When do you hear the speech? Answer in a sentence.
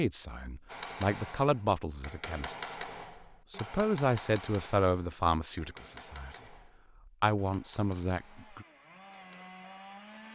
The speech can be heard from 0.0 to 2.9 s, from 3.5 to 6.5 s and from 7.2 to 8.7 s.